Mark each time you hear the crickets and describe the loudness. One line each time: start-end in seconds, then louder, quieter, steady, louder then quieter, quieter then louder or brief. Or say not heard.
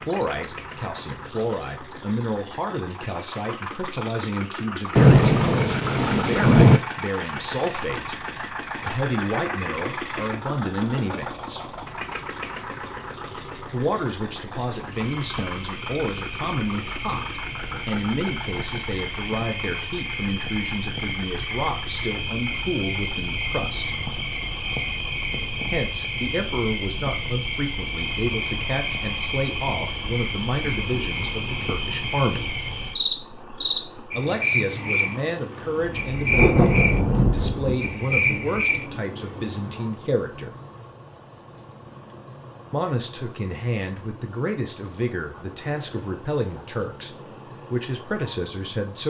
0.0-49.0 louder then quieter.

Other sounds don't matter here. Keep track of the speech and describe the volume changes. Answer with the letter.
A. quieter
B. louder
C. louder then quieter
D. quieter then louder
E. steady
E.